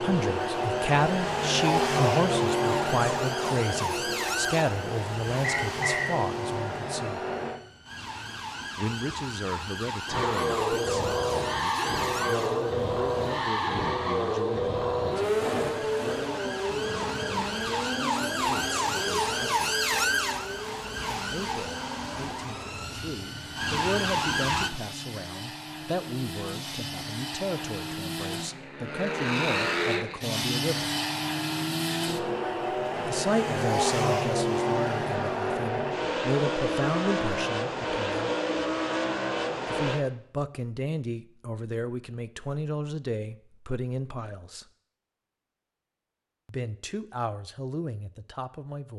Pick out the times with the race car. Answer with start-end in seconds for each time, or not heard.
0.0-7.6, 10.1-40.0.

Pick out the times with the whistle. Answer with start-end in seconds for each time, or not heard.
5.4-6.2.